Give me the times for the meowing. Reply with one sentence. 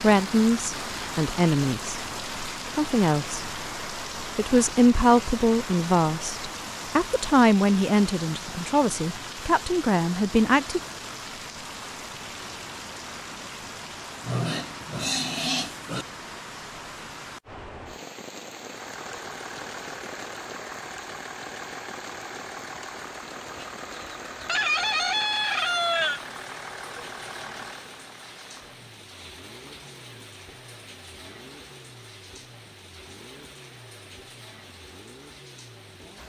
You can't hear the meowing here.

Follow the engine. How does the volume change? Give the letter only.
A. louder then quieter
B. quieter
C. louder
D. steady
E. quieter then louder
B.